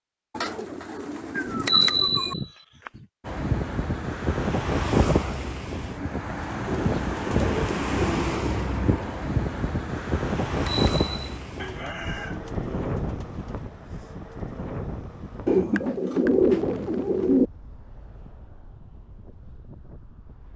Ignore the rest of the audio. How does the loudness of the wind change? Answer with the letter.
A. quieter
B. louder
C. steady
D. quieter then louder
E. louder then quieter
A.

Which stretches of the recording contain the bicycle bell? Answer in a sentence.
The bicycle bell can be heard from 1.4 to 2.9 s and from 10.7 to 11.3 s.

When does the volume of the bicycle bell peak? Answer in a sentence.
The volume of the bicycle bell peaks at 2 seconds.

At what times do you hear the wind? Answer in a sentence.
The wind can be heard from 3.2 to 20.5 s.